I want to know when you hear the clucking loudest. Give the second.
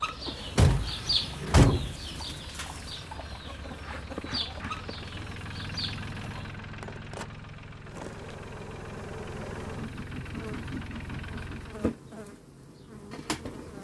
1 s.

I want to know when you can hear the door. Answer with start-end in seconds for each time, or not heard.
0.2-1.9.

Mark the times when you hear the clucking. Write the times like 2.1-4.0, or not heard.
0.0-6.5.